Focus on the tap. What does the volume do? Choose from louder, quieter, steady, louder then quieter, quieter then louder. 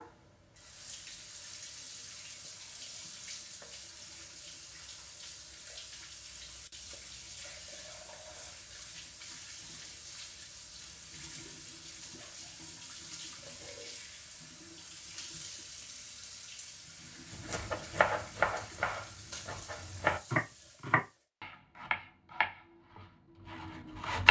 steady.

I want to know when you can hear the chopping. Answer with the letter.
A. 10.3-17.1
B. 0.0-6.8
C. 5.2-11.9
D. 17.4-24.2
D.